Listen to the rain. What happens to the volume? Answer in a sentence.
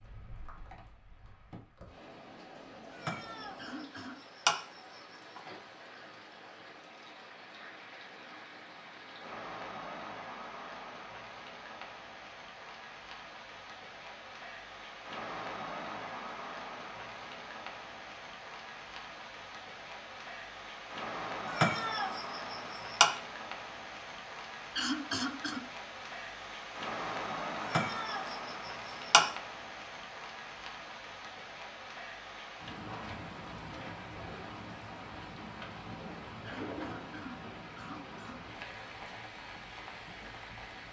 The volume of the rain goes up.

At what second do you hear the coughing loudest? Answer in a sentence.
The loudest moment of the coughing is at 25 seconds.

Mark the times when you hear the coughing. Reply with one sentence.
You can hear the coughing from 3.5 to 4.2 s, from 24.8 to 25.6 s and from 36.4 to 38.4 s.